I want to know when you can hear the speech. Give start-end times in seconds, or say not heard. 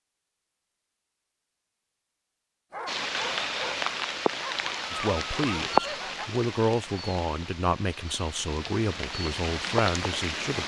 4.9-10.6.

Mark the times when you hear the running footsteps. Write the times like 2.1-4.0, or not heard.
not heard.